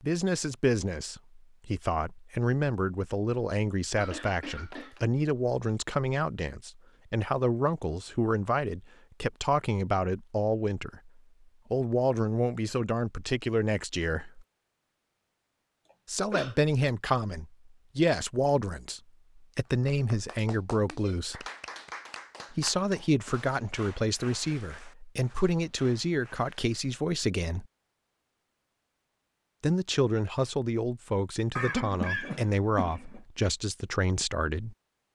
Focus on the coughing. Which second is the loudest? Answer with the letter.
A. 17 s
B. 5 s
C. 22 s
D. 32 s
D.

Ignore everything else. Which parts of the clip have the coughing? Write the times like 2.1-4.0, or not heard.
4.0-5.0, 15.8-16.6, 31.6-33.2.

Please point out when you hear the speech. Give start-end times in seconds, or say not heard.
0.0-14.4, 16.1-21.4, 22.5-27.6, 29.6-34.8.